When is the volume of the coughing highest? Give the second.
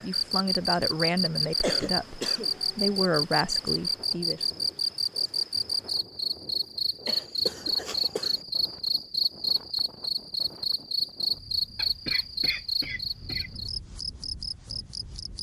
2 s.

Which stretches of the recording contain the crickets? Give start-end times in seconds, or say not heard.
0.0-15.3.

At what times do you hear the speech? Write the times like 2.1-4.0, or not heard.
0.0-4.5.